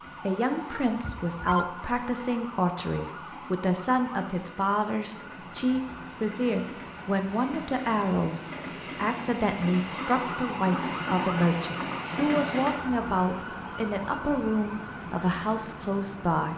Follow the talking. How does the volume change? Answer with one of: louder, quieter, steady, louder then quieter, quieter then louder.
steady.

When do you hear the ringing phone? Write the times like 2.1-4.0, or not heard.
0.7-1.6.